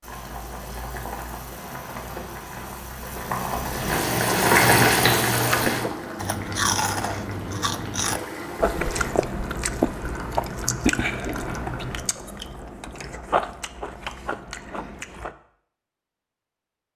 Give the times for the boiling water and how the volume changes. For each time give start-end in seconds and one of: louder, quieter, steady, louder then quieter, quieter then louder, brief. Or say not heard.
0.0-12.2 louder then quieter.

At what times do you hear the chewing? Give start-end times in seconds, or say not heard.
5.3-15.3.